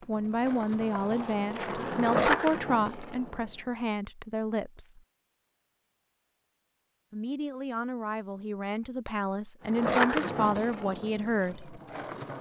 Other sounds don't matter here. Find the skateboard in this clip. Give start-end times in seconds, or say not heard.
0.0-3.5, 9.7-12.3.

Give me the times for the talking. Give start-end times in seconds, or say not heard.
0.1-5.0, 7.1-11.8.